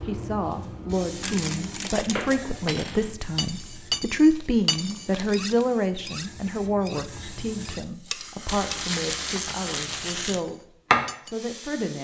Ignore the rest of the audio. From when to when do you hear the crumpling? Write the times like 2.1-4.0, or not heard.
1.2-2.4, 4.3-5.5, 8.4-10.4.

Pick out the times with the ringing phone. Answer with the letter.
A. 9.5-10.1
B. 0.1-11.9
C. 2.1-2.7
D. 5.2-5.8
C.